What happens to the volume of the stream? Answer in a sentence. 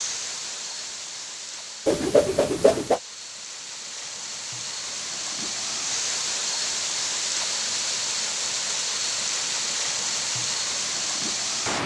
The loudness of the stream goes up.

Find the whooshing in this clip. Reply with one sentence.
You can hear the whooshing from 1.9 to 3.0 s.